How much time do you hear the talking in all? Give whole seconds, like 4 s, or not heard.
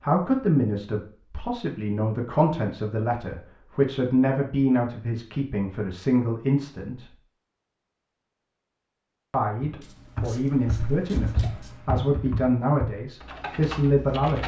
12 s.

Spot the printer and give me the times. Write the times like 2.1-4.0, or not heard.
not heard.